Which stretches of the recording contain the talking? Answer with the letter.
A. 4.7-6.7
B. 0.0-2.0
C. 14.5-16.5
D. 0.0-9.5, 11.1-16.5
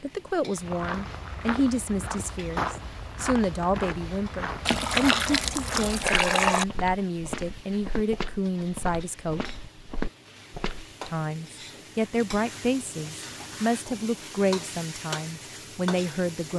D.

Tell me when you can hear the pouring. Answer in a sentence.
You can hear the pouring from 4.7 to 6.7 s.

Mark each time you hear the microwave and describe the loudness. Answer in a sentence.
You can't hear the microwave here.